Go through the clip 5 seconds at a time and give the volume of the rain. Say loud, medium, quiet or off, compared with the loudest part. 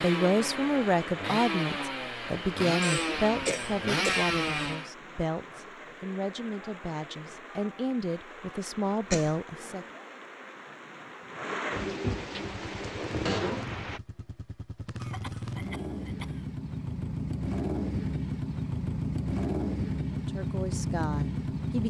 medium, medium, loud, off, off.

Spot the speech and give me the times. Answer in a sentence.
You can hear the speech from 0.0 to 9.8 s and from 20.1 to 21.8 s.